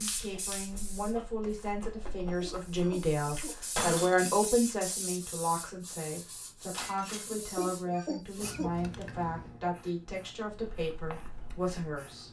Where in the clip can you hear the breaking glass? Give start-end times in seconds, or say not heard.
3.8-4.3, 6.7-7.3.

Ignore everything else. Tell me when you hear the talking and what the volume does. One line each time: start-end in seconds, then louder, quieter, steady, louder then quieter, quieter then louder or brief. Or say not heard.
0.0-12.2 louder then quieter.